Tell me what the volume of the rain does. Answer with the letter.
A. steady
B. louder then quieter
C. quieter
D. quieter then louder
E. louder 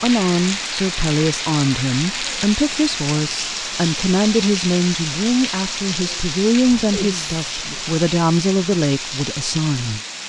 A.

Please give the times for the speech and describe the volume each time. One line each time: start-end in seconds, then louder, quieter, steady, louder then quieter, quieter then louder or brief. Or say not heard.
0.0-10.0 steady.